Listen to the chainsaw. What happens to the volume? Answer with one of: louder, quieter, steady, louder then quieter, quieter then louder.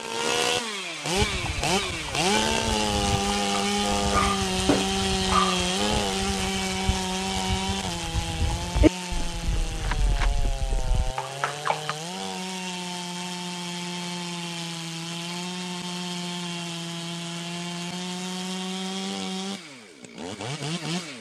quieter.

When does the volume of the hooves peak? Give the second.
9 s.